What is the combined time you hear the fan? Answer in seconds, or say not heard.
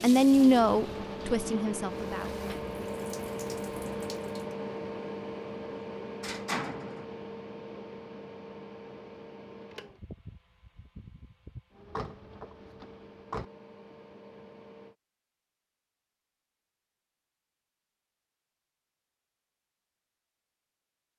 15 s.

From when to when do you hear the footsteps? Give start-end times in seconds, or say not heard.
not heard.